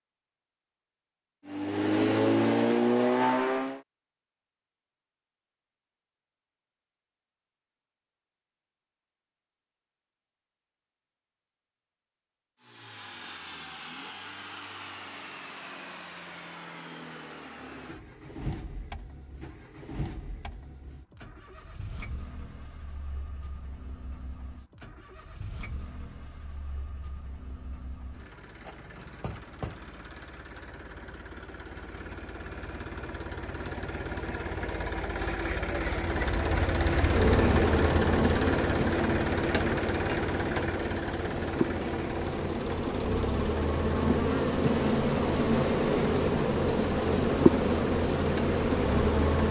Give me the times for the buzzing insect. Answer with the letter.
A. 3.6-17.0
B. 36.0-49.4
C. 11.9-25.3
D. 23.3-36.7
B.